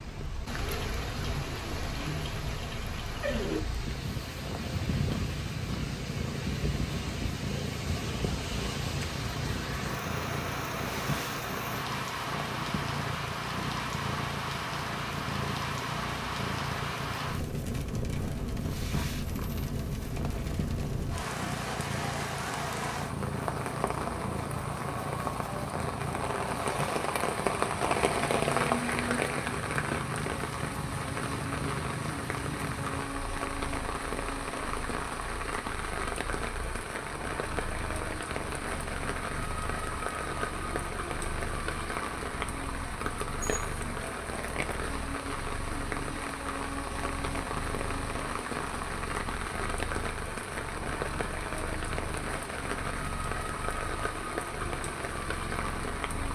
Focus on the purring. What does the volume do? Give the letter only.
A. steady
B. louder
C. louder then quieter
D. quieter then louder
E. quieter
E.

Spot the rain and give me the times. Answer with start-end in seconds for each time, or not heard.
0.0-56.2.